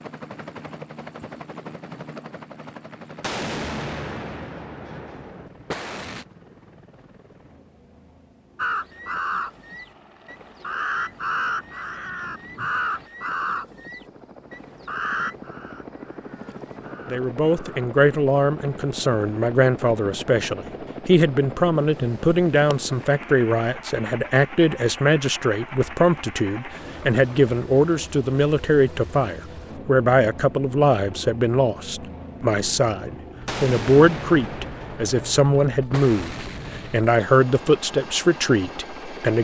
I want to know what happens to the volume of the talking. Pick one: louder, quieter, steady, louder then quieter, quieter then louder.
steady.